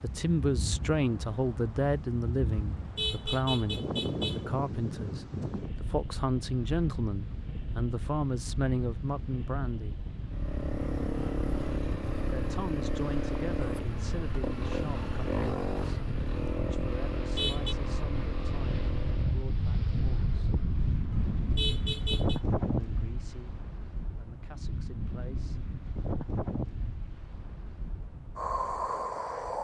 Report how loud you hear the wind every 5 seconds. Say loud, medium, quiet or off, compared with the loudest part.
loud, medium, medium, loud, loud, loud.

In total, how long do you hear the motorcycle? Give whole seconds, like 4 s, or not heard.
9 s.